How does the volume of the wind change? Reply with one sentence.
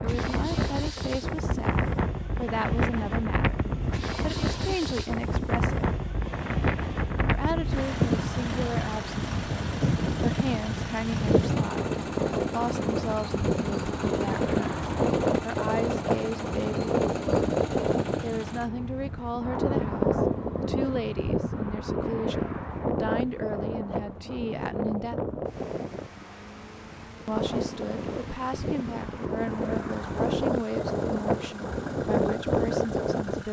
The loudness of the wind stays about the same.